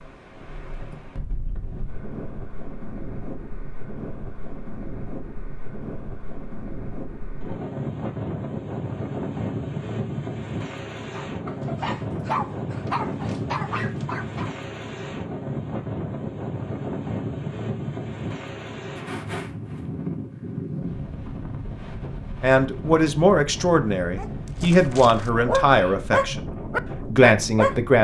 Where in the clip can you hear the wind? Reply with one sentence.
You can hear the wind from 0.0 to 28.0 s.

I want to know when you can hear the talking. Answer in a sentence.
The talking can be heard from 22.4 to 26.5 s and from 27.1 to 28.0 s.